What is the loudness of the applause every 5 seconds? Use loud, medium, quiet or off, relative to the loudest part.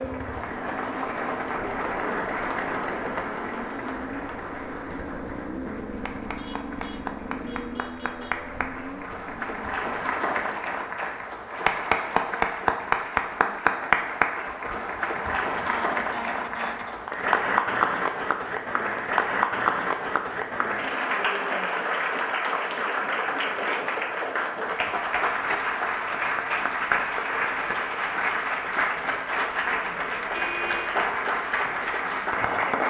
medium, medium, loud, loud, loud, loud, loud.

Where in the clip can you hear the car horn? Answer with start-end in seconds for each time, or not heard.
5.9-8.4, 15.5-17.1, 30.3-31.0.